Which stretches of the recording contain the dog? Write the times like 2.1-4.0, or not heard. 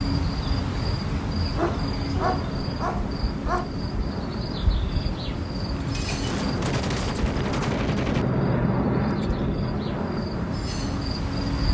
1.4-3.7.